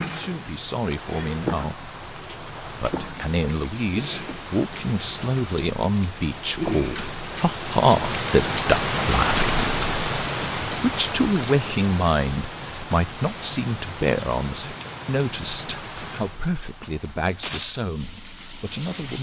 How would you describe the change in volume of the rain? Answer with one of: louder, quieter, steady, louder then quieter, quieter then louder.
louder then quieter.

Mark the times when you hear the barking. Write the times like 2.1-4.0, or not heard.
not heard.